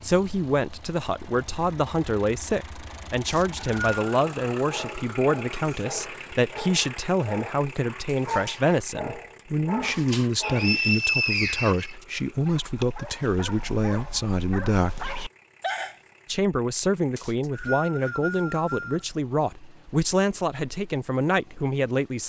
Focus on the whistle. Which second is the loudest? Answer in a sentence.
The loudest moment of the whistle is at 11 seconds.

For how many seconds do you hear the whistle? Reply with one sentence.
The whistle can be heard for 4 seconds in total.